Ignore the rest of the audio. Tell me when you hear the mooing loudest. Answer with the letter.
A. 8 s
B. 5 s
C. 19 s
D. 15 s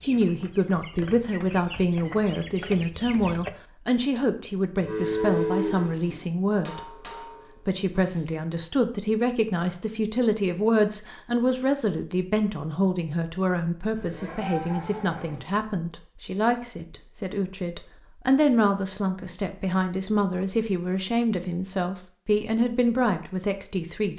B.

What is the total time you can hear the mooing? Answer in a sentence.
The mooing can be heard for 3 seconds in total.